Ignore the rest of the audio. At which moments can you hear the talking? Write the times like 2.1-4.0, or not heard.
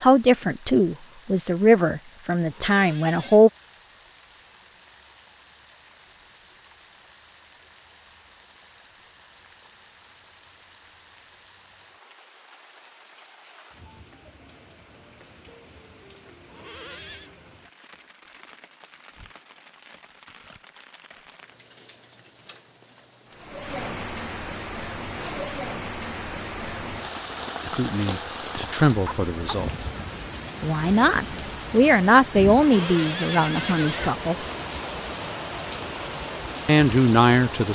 0.0-3.5, 27.7-29.7, 30.6-34.4, 36.6-37.7.